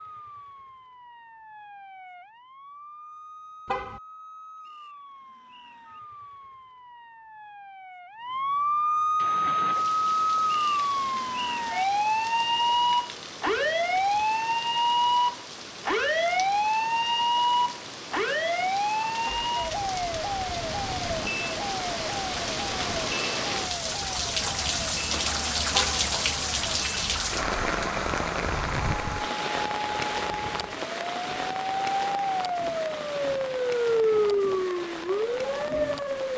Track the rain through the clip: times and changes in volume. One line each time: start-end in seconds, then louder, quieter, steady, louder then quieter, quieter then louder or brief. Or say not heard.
9.2-36.3 louder then quieter.